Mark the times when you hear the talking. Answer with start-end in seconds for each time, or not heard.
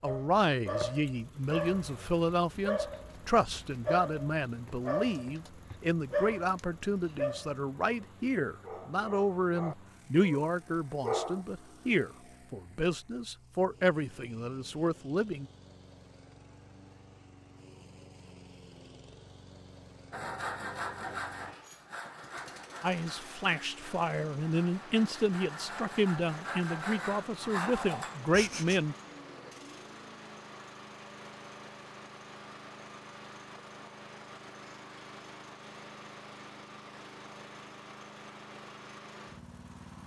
0.0-15.5, 22.8-28.9.